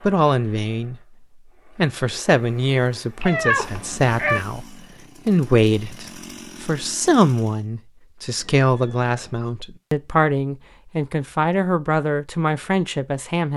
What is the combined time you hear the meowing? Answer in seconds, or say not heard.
2 s.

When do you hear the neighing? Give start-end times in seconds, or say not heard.
not heard.